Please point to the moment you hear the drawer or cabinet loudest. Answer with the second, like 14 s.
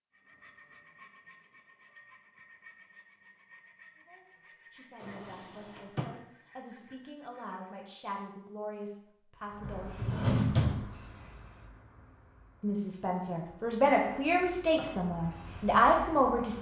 10 s.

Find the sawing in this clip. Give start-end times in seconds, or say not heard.
0.1-7.6.